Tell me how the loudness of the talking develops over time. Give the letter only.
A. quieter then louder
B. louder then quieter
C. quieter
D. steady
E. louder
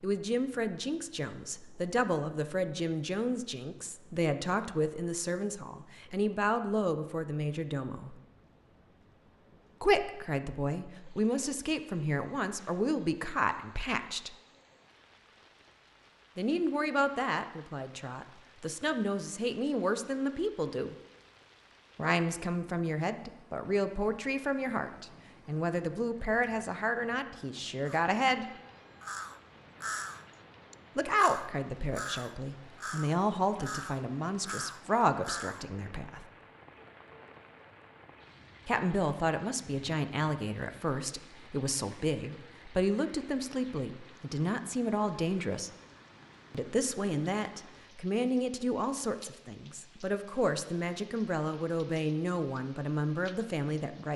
D.